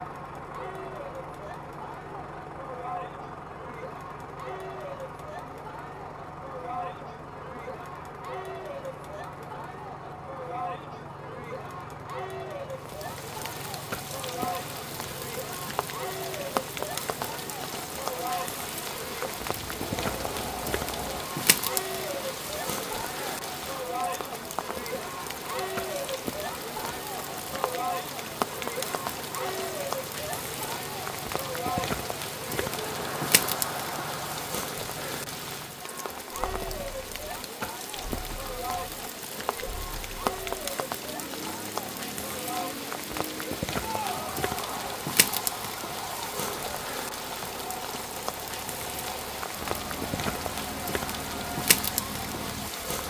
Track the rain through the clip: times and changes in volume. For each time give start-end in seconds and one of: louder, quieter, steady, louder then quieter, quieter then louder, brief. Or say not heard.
12.7-53.0 steady.